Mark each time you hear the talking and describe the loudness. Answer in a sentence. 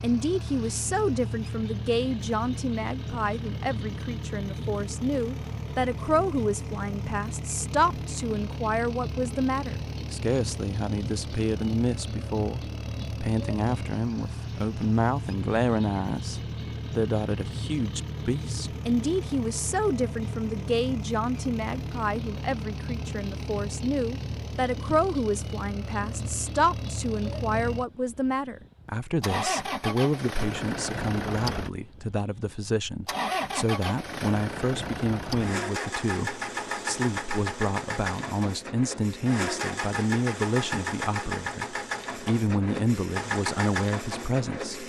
You can hear the talking from 0.0 to 44.8 s, at a steady volume.